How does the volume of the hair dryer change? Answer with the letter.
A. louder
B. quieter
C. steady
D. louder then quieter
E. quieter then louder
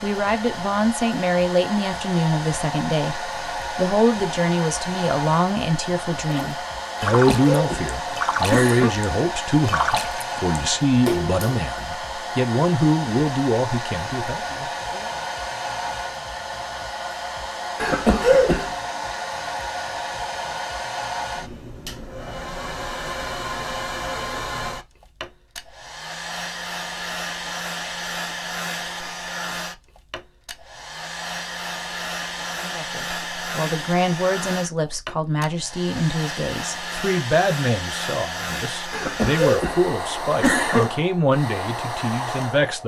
C.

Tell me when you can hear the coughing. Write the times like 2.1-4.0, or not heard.
7.0-8.9, 17.8-18.7, 38.9-40.9.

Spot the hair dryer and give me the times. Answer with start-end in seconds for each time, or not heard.
0.0-42.8.